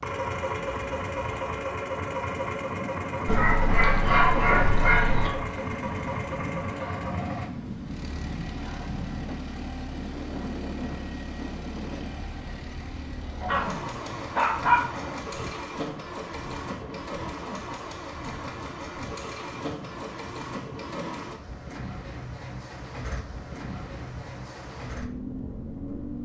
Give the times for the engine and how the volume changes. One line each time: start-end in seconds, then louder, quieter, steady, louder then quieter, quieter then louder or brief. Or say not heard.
0.0-26.2 quieter.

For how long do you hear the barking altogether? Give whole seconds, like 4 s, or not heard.
4 s.